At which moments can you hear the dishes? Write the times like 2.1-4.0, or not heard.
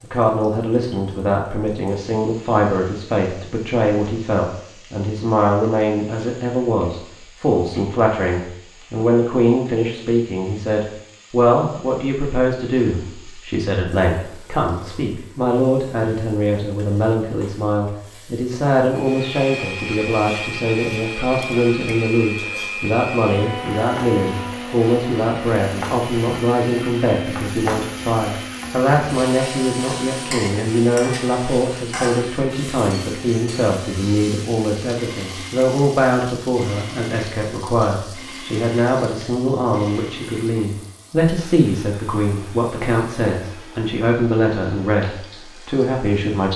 not heard.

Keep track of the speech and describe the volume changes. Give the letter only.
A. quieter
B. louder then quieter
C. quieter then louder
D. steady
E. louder
D.